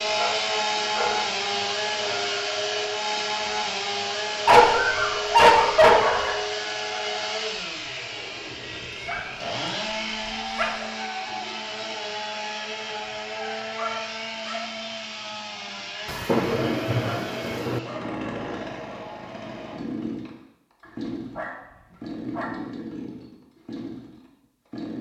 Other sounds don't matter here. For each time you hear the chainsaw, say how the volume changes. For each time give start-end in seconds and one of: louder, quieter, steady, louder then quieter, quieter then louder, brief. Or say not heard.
0.0-24.9 quieter.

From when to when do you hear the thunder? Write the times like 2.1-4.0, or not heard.
16.1-17.8.